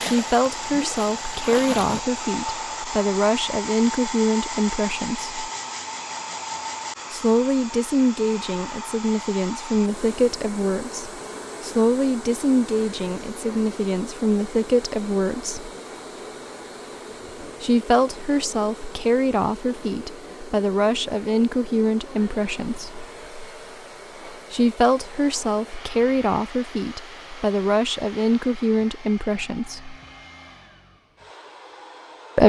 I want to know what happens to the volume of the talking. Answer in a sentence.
The volume of the talking stays about the same.